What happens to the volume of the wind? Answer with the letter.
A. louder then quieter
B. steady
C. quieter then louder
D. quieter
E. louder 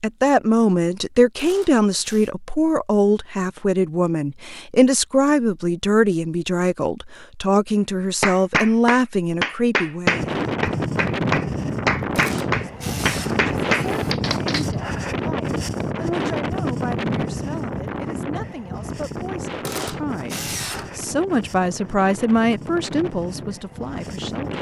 D.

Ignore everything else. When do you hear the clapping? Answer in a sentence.
You can hear the clapping from 8.2 to 14.7 s.